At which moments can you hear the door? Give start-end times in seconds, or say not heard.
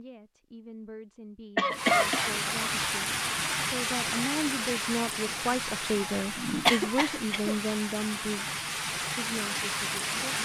not heard.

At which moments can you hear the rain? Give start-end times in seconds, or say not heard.
1.6-10.3.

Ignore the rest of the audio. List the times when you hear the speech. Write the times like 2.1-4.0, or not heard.
0.0-10.3.